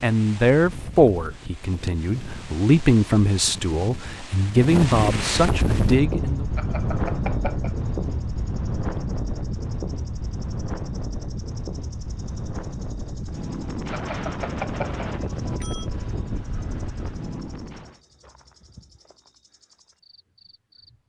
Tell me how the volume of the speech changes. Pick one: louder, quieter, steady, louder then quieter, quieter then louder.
quieter then louder.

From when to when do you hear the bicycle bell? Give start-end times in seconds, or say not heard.
6.5-7.8, 13.9-15.9.